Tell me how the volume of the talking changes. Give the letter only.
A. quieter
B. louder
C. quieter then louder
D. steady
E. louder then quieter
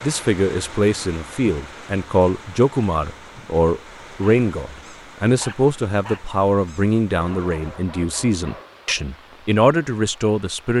D.